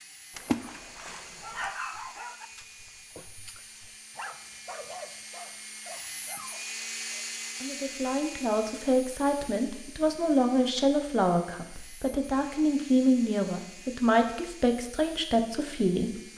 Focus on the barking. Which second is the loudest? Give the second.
2 s.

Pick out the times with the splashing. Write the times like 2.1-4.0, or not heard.
0.3-1.7.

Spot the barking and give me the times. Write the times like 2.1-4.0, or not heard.
1.4-7.5.